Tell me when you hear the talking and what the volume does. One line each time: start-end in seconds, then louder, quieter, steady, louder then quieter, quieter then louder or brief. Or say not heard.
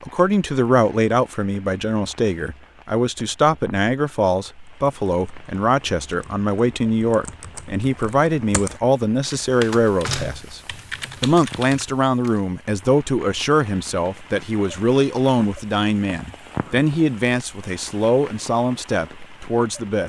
0.0-10.6 steady
11.2-20.0 steady.